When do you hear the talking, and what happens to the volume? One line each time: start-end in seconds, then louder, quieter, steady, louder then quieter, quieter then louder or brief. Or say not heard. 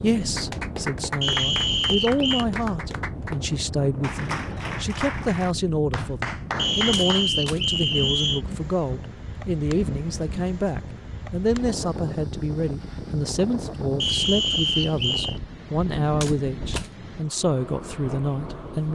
0.0-18.8 steady.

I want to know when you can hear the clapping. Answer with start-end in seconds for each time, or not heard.
0.1-7.2.